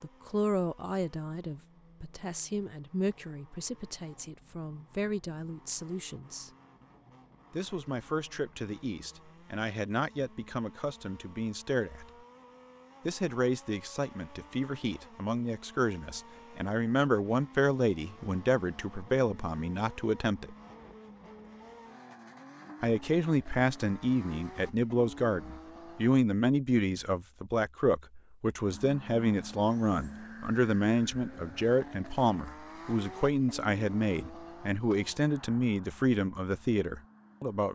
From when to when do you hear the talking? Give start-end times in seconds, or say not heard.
0.0-6.5, 7.5-12.1, 13.1-20.6, 22.8-37.7.